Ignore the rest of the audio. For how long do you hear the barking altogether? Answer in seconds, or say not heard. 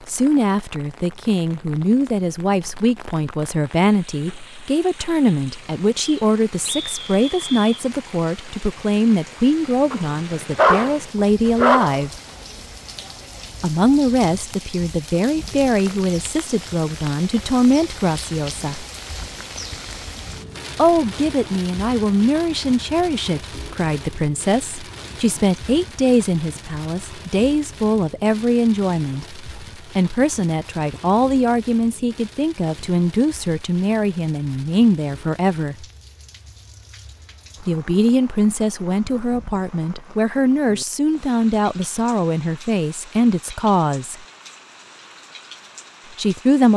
2 s.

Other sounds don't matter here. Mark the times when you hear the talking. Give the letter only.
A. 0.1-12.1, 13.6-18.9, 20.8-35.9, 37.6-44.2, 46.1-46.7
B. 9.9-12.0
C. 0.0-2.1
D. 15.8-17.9
A.